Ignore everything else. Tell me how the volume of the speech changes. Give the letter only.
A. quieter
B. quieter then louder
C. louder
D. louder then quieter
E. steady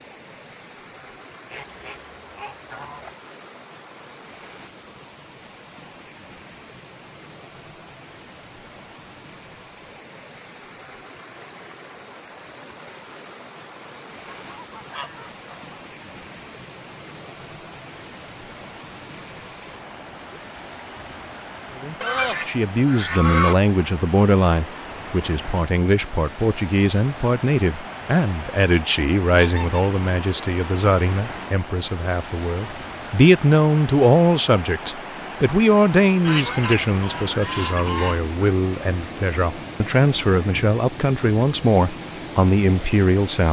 E.